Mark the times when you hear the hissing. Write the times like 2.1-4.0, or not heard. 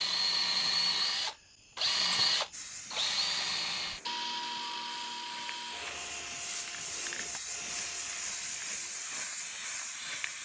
2.5-10.3.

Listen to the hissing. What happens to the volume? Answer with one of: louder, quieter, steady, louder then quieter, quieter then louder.
louder.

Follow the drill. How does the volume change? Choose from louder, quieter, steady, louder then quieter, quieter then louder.
quieter.